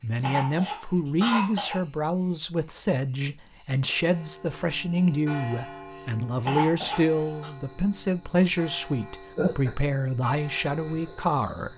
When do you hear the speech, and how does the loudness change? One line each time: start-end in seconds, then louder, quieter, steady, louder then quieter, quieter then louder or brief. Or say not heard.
0.0-11.7 steady.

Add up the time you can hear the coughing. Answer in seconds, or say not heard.
3 s.